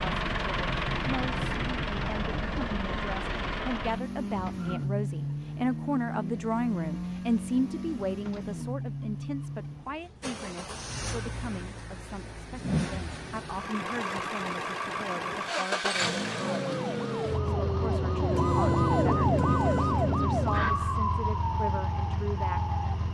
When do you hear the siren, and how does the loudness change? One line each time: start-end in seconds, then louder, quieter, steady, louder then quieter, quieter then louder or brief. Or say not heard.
16.2-22.9 louder then quieter.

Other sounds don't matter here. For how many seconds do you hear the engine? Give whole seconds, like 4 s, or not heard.
23 s.